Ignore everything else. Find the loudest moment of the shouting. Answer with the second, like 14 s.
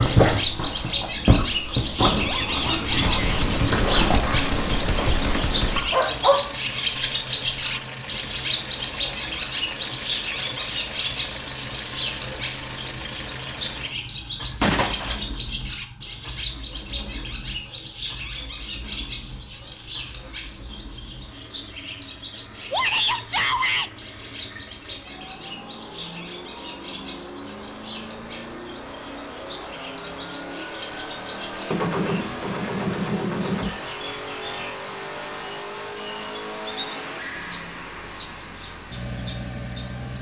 23 s.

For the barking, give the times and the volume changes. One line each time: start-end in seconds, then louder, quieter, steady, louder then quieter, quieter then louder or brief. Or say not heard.
0.0-6.4 steady.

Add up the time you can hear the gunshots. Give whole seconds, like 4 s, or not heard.
5 s.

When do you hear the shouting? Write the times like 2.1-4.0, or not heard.
2.2-3.5, 22.7-23.9.